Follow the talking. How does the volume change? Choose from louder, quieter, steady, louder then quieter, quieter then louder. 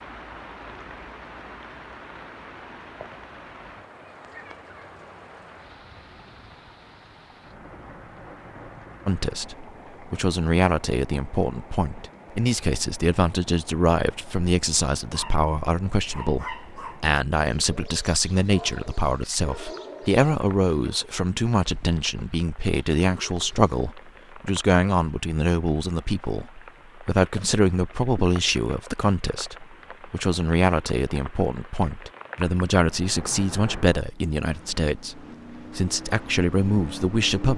steady.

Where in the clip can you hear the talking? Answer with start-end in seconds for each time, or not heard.
9.1-37.5.